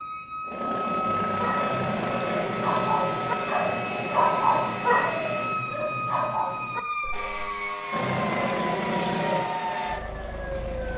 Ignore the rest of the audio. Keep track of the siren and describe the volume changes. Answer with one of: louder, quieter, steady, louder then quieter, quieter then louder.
steady.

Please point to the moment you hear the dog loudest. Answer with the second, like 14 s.
4 s.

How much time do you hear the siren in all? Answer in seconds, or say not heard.
11 s.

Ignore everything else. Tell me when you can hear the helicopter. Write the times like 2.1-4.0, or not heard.
0.0-5.5, 7.9-10.9.